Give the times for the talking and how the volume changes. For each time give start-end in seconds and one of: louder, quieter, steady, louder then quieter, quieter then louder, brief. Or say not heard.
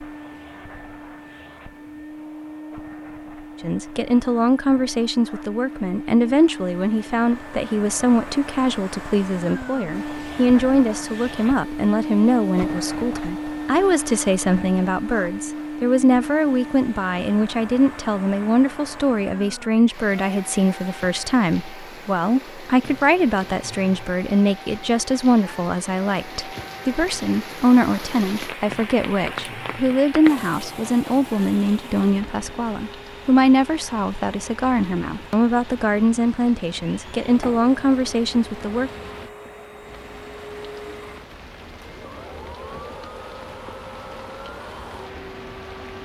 3.6-38.9 steady.